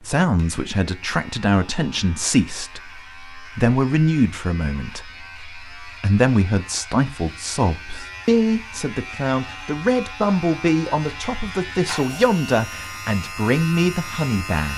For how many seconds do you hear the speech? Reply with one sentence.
You can hear the speech for 15 seconds altogether.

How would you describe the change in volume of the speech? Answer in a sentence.
The loudness of the speech stays about the same.